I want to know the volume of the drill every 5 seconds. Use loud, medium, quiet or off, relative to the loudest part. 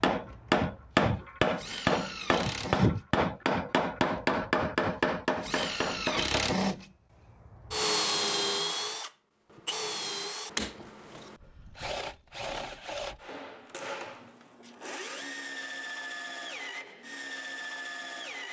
medium, loud, medium, medium.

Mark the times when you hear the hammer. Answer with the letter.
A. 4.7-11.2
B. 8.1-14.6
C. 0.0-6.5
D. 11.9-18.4
C.